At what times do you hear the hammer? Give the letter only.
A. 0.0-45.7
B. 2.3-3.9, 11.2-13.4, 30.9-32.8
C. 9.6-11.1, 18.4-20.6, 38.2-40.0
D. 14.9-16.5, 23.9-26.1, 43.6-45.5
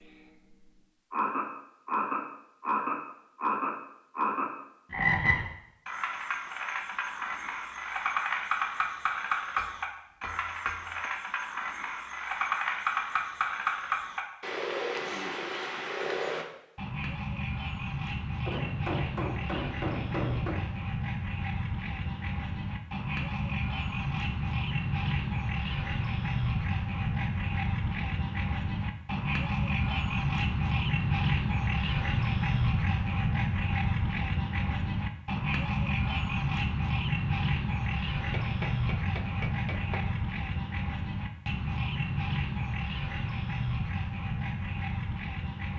C.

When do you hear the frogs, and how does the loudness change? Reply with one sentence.
You can hear the frogs from 0.0 to 45.7 s, at a steady volume.